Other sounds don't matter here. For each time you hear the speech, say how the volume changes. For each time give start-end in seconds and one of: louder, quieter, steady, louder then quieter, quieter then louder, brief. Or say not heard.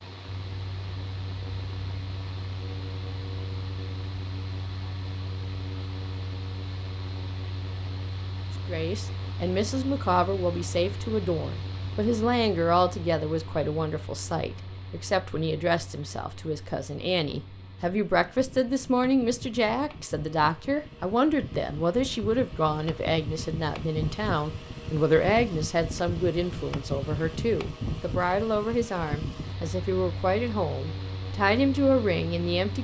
8.7-32.7 steady.